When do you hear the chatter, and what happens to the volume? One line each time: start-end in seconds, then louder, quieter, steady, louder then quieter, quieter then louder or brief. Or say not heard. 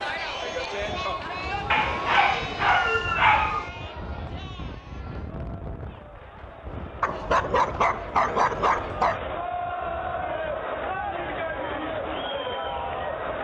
0.0-13.3 quieter then louder.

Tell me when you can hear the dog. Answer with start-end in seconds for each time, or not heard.
1.7-3.6, 7.0-9.2.